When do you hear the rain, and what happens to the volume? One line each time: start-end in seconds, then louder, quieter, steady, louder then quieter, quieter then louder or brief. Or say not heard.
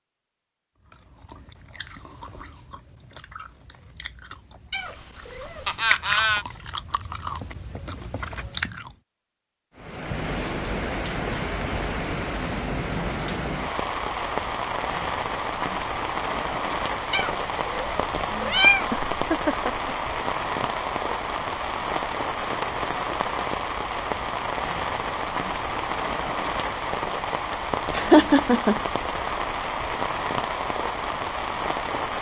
9.8-32.1 steady.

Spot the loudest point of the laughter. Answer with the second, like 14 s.
28 s.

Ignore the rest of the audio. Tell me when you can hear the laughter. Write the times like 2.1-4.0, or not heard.
5.7-6.5, 18.9-19.9, 27.9-28.8.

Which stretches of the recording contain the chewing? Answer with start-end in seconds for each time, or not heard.
0.8-8.9.